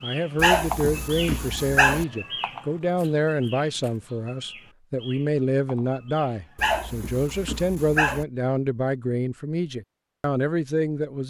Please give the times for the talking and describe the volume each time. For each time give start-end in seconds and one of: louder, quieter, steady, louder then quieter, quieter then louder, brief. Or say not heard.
0.0-11.2 steady.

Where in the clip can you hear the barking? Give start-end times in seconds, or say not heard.
0.3-2.0, 6.5-8.2.